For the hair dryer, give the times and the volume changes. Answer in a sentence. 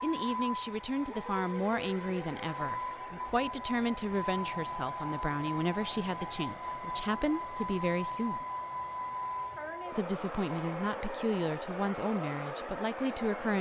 You can hear the hair dryer from 0.0 to 13.5 s, at a steady volume.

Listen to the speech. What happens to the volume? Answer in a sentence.
The loudness of the speech stays about the same.